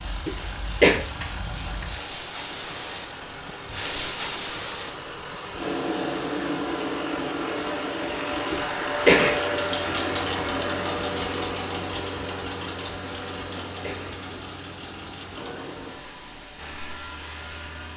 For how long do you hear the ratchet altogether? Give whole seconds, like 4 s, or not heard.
not heard.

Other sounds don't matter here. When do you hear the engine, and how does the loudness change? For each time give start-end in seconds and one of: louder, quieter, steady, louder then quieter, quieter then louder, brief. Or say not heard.
0.0-17.9 louder then quieter.